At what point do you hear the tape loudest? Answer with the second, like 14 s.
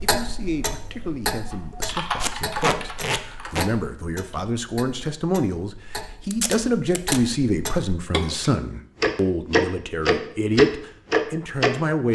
3 s.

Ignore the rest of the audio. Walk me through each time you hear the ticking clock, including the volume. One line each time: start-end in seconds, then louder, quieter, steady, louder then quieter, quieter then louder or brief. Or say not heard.
0.0-12.1 quieter then louder.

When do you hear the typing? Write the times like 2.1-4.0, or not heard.
1.5-4.5.